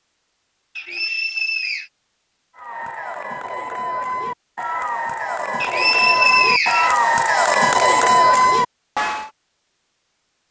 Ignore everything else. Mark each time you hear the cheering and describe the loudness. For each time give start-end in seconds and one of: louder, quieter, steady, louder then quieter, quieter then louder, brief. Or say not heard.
2.5-9.3 louder.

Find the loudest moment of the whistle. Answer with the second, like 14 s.
6 s.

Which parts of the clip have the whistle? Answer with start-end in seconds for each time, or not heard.
0.8-1.9, 5.6-7.0.